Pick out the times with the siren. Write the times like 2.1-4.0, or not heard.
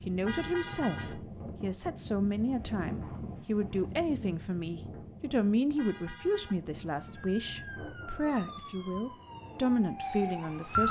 6.8-10.8.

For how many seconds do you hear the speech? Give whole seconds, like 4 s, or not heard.
11 s.